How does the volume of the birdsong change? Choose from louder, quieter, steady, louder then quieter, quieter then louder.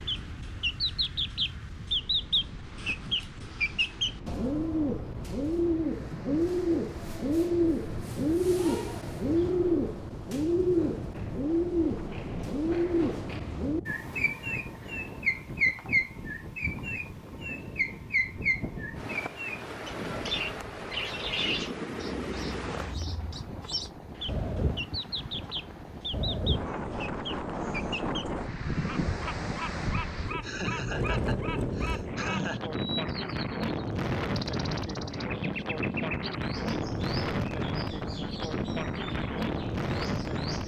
quieter.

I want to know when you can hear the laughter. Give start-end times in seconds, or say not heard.
30.4-32.7.